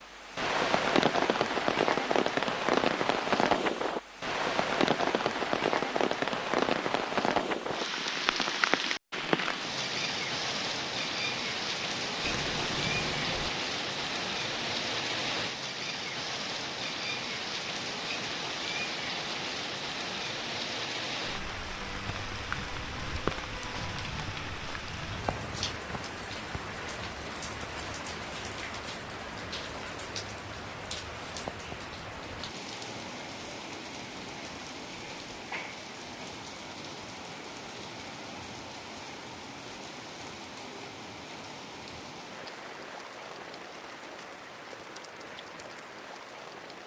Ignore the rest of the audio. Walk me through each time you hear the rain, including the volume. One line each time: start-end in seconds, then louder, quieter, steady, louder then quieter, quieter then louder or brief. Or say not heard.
0.0-46.8 quieter.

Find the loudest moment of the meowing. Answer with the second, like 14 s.
13 s.